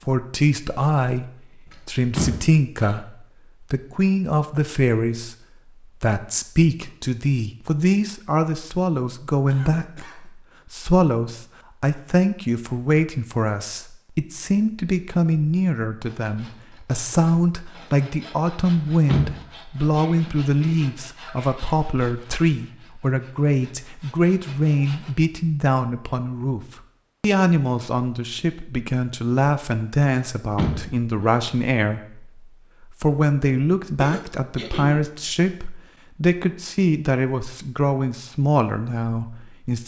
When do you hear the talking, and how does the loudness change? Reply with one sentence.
The talking can be heard from 0.1 to 39.8 s, at a steady volume.